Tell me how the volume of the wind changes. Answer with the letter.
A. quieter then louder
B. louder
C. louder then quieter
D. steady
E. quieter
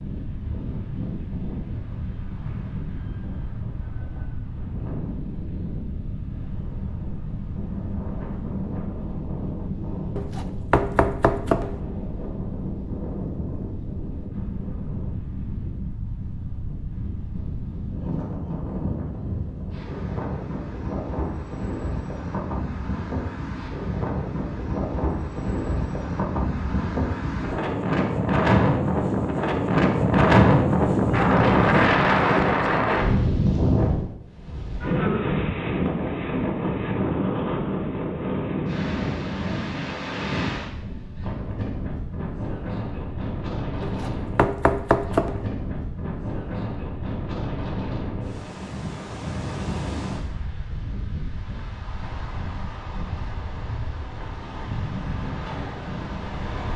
C.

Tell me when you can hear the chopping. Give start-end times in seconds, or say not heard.
10.2-11.8, 43.8-45.5.